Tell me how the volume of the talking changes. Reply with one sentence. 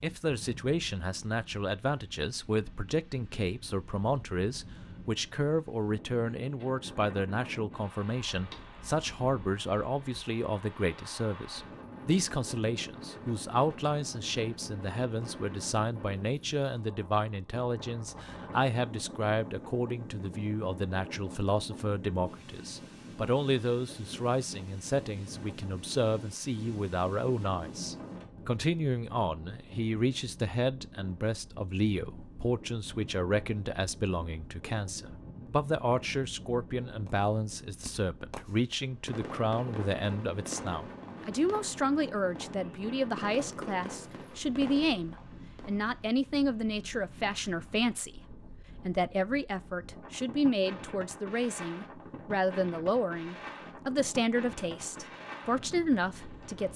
The loudness of the talking stays about the same.